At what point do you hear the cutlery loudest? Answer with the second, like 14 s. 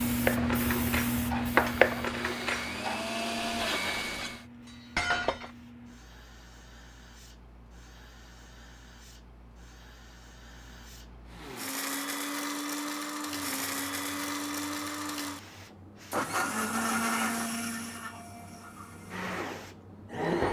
2 s.